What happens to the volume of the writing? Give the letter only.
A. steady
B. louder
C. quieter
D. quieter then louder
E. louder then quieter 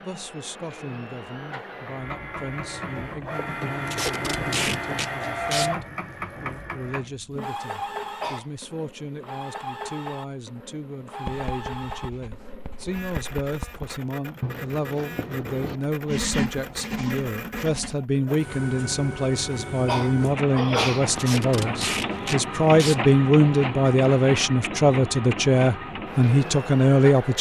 B.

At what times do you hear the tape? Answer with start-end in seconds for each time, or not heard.
3.9-5.7, 21.1-23.0.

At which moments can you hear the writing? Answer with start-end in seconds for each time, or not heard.
11.2-17.9.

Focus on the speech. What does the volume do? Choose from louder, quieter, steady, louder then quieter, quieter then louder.
louder.